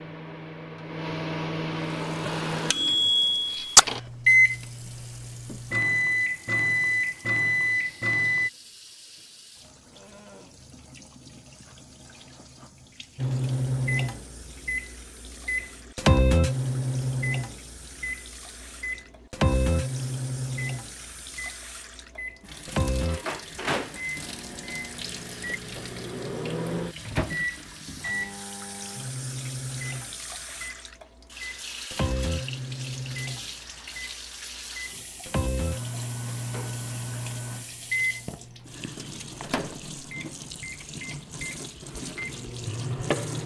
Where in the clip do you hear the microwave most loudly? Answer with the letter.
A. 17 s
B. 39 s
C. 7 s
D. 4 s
D.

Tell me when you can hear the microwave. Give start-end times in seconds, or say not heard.
0.0-8.5, 13.2-43.4.